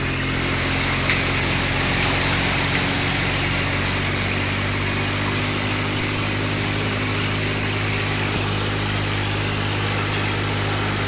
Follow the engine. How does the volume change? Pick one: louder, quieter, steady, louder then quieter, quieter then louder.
steady.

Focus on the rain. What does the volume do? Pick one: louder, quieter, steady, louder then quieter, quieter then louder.
quieter.